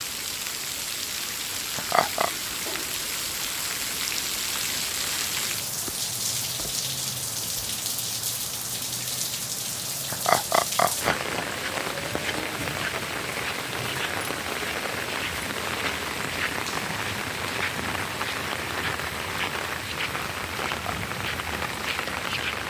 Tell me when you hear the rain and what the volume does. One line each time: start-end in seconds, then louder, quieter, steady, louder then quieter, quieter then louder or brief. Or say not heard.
0.0-22.6 steady.